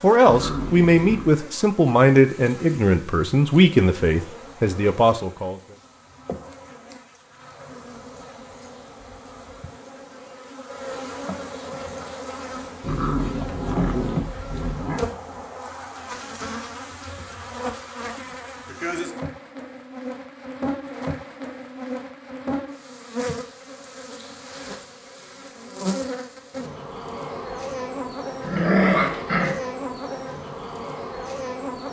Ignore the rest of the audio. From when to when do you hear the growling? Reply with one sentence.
You can hear the growling from 0.2 to 1.4 s, from 12.8 to 15.1 s and from 28.4 to 29.6 s.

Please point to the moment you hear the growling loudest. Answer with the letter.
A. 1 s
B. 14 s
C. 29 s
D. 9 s
C.